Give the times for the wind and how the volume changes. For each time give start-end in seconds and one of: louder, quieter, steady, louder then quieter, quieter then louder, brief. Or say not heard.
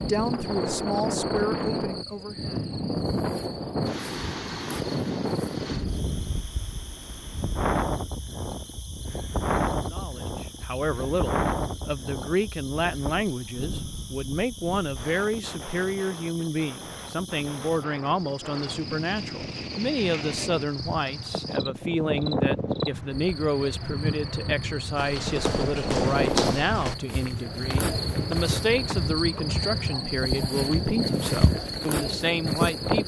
0.0-33.0 quieter then louder.